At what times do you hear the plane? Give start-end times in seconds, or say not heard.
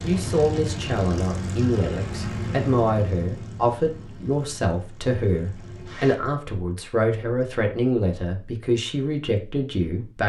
0.0-6.2.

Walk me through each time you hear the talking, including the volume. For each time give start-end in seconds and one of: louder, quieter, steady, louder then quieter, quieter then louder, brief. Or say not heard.
0.0-10.2 steady.